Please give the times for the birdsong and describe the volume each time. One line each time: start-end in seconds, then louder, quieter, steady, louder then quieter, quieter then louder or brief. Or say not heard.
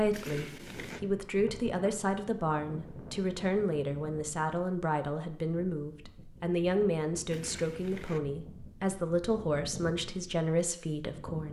not heard.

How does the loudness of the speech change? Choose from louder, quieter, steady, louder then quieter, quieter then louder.
steady.